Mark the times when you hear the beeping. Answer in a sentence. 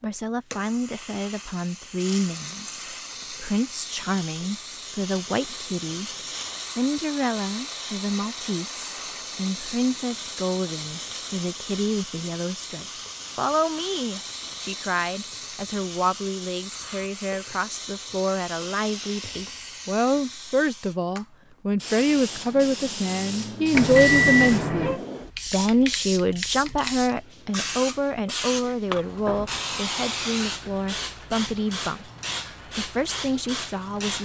You can hear the beeping from 23.7 to 25.0 s.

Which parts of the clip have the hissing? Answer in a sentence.
You can hear the hissing from 0.0 to 34.2 s.